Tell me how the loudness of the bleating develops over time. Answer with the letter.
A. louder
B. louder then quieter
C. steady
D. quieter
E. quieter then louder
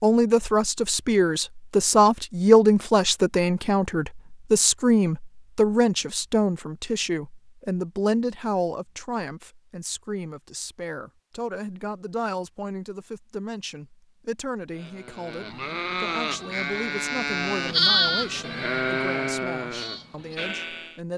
B.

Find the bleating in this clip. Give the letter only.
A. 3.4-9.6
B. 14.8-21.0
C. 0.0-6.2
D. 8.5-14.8
B.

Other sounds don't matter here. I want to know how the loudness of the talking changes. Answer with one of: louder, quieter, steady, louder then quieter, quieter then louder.
quieter.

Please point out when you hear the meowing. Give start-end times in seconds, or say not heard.
not heard.